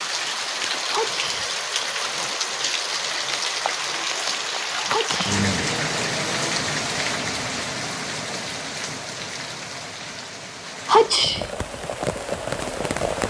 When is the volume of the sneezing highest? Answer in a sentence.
The loudest moment of the sneezing is at 11 seconds.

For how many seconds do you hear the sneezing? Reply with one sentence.
You can hear the sneezing for 2 seconds altogether.